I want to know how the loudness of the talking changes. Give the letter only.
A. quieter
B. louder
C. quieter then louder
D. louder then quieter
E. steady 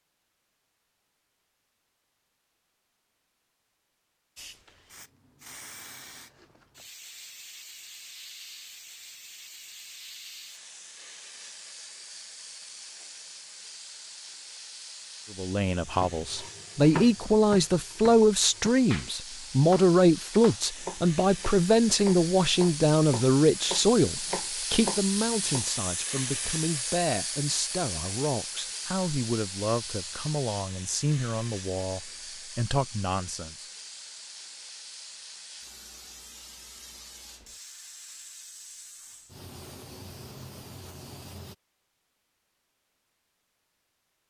A.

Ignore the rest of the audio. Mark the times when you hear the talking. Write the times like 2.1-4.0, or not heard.
15.3-33.7.